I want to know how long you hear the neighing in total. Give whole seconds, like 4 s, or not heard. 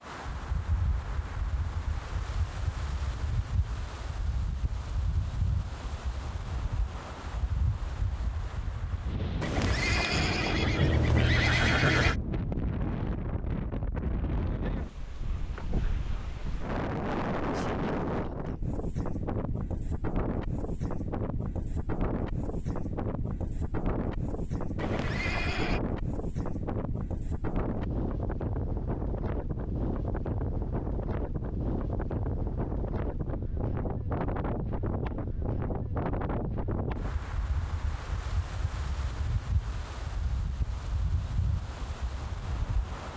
4 s.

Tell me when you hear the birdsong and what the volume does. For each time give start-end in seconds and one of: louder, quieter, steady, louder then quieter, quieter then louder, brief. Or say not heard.
not heard.